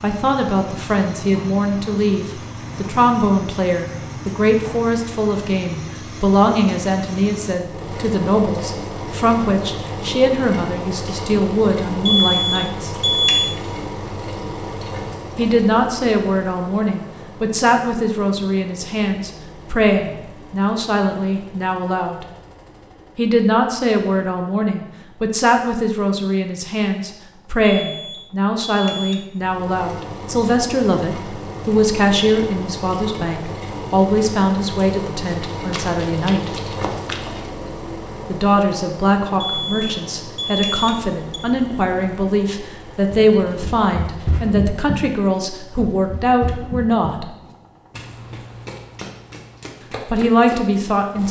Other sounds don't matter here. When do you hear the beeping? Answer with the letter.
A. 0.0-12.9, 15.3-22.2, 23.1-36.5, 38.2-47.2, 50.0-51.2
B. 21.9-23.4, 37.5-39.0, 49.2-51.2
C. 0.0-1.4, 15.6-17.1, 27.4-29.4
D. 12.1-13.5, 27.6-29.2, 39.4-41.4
D.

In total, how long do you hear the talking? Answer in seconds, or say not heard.
43 s.